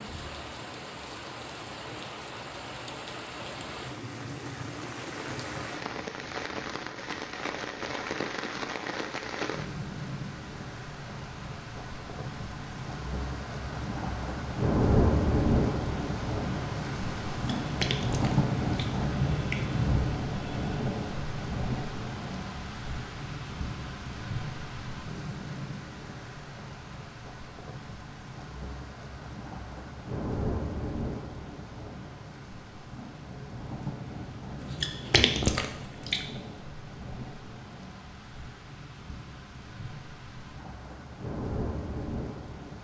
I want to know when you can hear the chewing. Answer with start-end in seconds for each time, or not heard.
17.4-19.6, 34.6-36.4.